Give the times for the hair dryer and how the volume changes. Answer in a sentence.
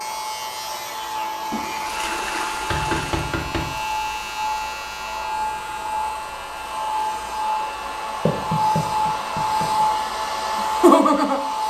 You can hear the hair dryer from 0.0 to 11.6 s, getting louder.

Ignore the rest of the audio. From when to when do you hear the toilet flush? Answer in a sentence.
The toilet flush can be heard from 1.5 to 3.2 s.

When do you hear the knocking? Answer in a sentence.
You can hear the knocking from 2.6 to 3.7 s and from 8.2 to 9.8 s.